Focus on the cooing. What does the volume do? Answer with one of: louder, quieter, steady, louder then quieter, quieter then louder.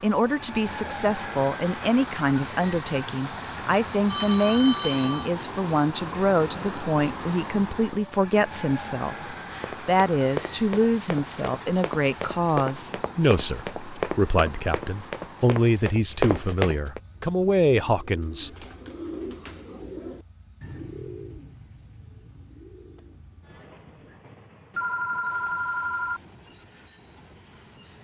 quieter.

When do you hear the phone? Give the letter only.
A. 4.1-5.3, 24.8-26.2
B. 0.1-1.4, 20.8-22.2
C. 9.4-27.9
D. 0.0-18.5
A.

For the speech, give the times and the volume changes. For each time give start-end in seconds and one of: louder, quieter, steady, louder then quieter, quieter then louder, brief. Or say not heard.
0.0-18.5 steady.